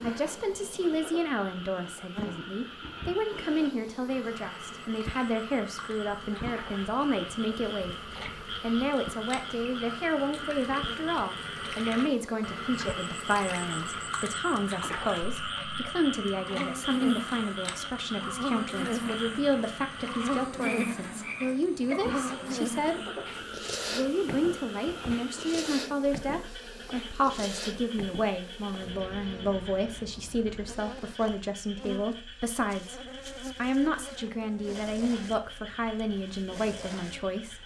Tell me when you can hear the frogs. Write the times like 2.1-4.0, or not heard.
0.0-37.6.